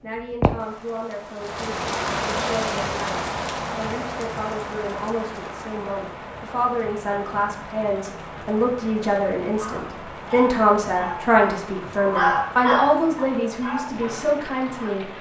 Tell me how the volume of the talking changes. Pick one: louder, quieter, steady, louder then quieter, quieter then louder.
louder.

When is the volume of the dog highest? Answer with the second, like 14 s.
12 s.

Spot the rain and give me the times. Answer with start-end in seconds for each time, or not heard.
0.0-15.1.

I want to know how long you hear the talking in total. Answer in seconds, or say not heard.
15 s.